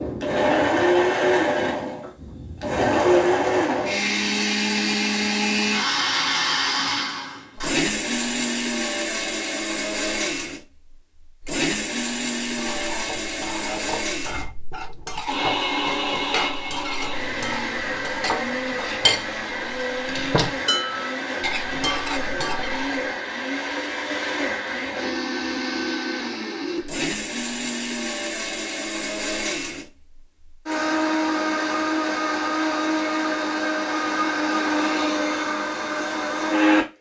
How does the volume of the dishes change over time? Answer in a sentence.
The volume of the dishes goes up.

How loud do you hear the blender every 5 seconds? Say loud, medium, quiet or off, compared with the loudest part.
loud, loud, medium, medium, medium, medium, loud, loud.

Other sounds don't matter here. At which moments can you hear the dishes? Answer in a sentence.
You can hear the dishes from 12.4 to 23.1 s.